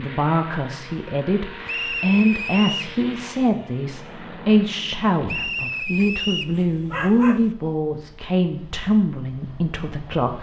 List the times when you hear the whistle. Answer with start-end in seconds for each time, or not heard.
1.6-2.9, 5.2-6.5.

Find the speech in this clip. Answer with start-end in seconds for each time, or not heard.
0.0-10.3.